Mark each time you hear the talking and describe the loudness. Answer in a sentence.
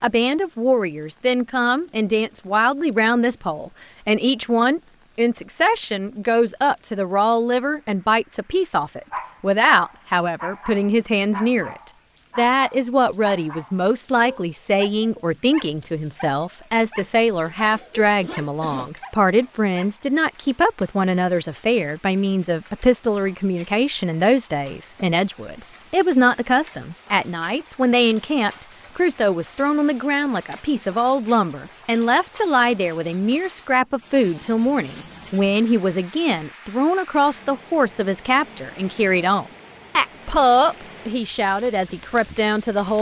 The talking can be heard from 0.0 to 42.9 s, at a steady volume.